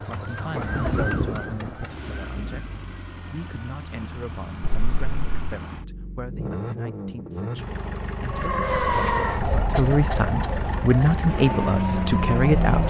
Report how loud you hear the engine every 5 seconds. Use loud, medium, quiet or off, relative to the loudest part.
quiet, medium, loud.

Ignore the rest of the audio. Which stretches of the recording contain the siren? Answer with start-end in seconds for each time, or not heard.
0.0-2.9, 8.2-12.8.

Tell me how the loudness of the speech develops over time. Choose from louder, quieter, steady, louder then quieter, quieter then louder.
louder.